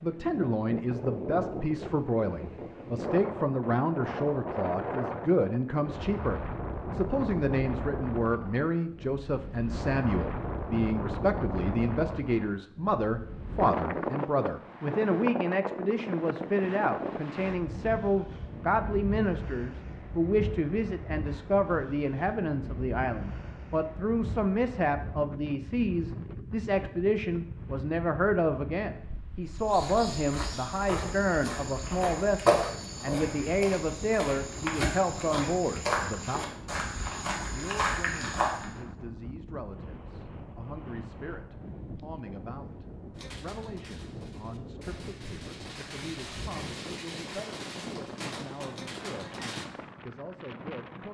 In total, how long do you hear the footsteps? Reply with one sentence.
You can hear the footsteps for 9 seconds altogether.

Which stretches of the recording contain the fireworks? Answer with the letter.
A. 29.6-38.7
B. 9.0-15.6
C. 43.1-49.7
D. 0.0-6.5
C.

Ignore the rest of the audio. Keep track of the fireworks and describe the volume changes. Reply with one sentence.
The loudness of the fireworks goes up.